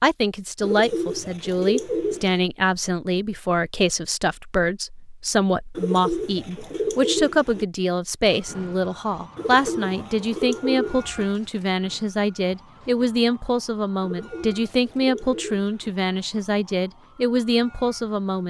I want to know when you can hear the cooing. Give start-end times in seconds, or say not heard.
0.6-2.4, 5.8-7.7, 9.3-11.2, 14.0-15.9.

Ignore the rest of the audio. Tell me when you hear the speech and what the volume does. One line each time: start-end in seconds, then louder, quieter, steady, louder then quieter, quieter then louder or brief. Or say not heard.
0.0-18.4 steady.